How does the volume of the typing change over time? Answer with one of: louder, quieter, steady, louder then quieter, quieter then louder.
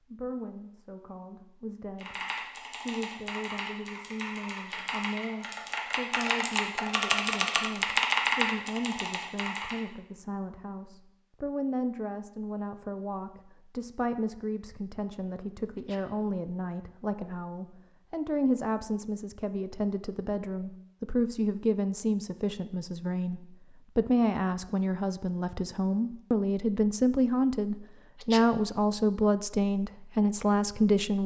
louder.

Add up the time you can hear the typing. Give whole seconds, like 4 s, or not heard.
8 s.